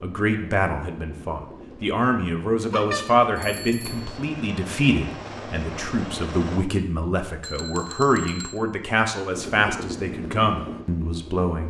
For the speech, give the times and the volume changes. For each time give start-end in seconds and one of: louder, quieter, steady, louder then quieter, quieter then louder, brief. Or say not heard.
0.0-11.6 steady.